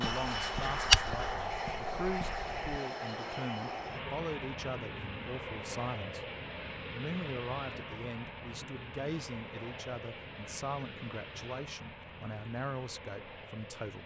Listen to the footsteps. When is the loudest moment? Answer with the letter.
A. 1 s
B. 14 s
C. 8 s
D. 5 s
A.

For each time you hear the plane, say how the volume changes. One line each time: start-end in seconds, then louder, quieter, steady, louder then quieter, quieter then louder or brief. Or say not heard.
0.0-14.0 quieter.